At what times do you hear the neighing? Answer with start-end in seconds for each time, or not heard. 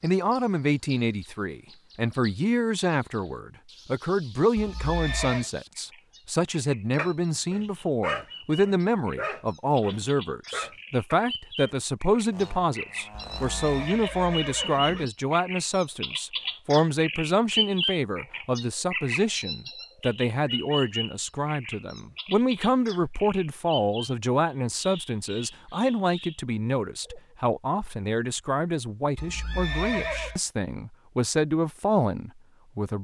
4.5-5.5, 13.3-15.1, 29.1-30.4.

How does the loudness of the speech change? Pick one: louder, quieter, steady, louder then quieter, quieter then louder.
steady.